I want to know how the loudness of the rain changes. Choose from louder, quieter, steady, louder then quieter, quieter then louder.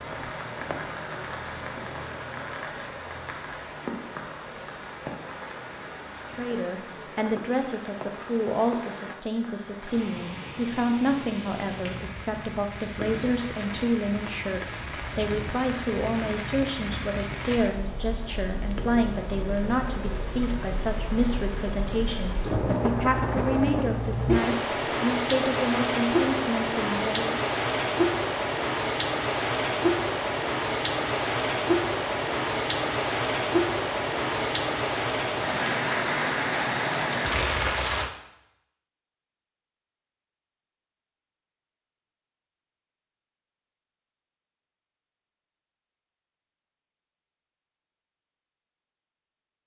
louder.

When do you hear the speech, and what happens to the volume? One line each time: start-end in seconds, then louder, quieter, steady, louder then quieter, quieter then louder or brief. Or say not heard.
6.3-27.4 steady.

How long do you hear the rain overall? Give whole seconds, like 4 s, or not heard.
38 s.